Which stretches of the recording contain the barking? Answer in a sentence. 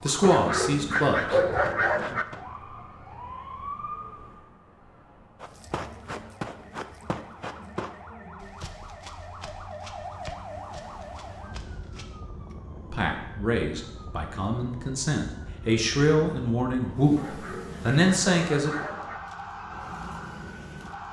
You can hear the barking from 0.2 to 2.2 s and from 17.1 to 19.2 s.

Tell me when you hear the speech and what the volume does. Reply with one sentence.
The speech can be heard briefly from 0.0 to 1.4 s; and from 12.9 to 18.9 s, getting louder.